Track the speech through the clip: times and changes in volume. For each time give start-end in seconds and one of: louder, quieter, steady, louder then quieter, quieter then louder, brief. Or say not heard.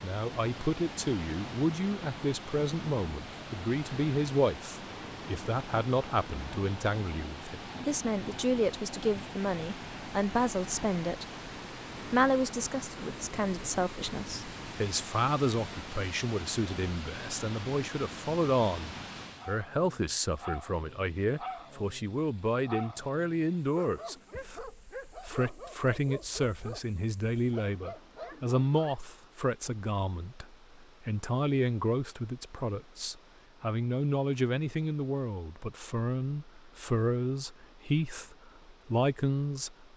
0.0-11.2 steady
12.1-39.9 steady.